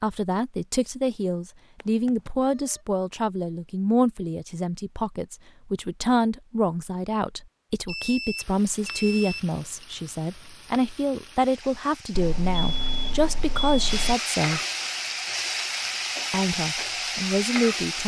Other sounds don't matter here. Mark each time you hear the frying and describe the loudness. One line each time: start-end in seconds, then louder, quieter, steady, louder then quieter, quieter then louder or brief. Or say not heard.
8.3-18.0 louder.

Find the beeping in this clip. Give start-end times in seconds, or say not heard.
1.8-2.8, 7.8-9.8, 12.2-14.2.